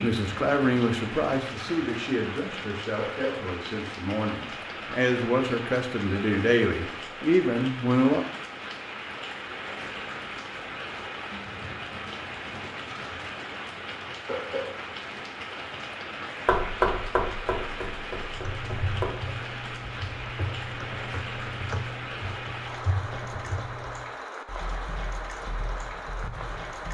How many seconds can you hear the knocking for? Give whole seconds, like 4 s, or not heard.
3 s.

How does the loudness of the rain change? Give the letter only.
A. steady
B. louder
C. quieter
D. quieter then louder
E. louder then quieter
A.